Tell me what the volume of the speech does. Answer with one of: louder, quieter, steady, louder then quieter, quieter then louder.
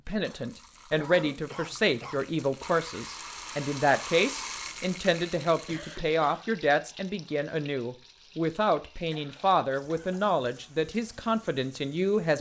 steady.